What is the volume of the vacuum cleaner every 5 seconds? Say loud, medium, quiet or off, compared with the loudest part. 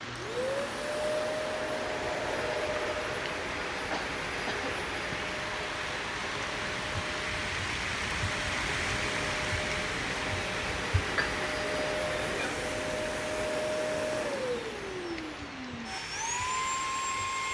loud, medium, loud, loud.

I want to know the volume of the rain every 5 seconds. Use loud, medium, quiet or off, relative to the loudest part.
medium, loud, loud, medium.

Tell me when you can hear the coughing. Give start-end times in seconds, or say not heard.
3.9-5.2.